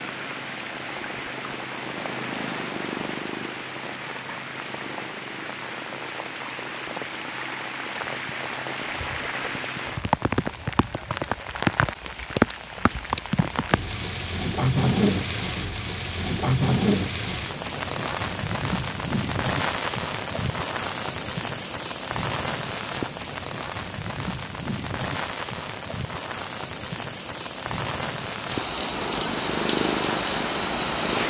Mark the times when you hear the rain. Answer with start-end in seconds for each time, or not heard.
0.0-31.2.